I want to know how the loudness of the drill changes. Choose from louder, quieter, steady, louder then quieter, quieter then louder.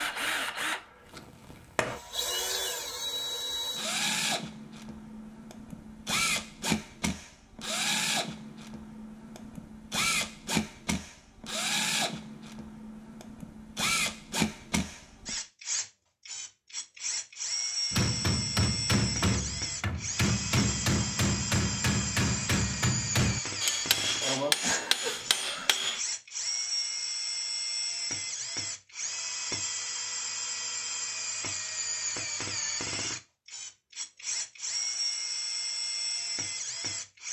steady.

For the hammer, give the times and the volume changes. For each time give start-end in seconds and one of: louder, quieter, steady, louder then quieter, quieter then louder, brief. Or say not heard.
17.9-26.0 steady.